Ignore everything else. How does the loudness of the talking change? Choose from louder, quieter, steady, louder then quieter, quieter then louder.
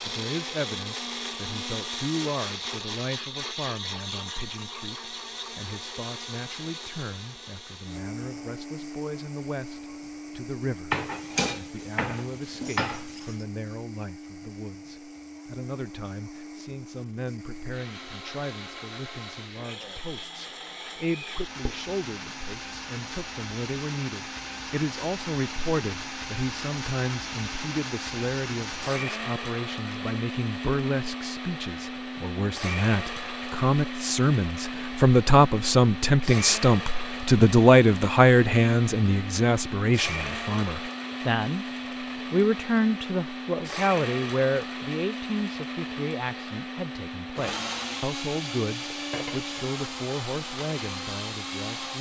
louder then quieter.